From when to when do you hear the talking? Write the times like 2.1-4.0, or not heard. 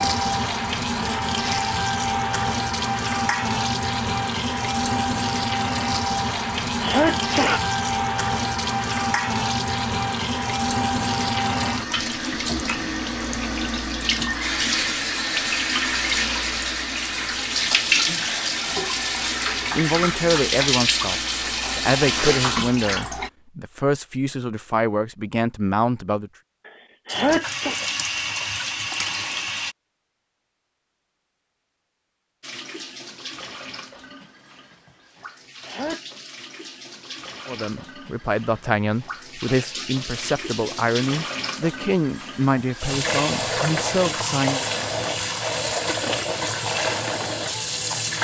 19.8-26.3, 37.5-44.6.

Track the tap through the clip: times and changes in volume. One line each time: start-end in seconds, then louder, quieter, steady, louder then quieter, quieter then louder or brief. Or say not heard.
0.0-23.3 steady
27.1-29.8 brief
32.4-48.2 louder.